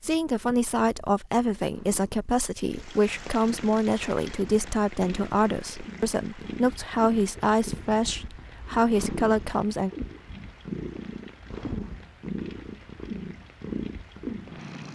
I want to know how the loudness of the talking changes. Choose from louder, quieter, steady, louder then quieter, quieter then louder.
steady.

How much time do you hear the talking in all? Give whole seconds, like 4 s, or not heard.
10 s.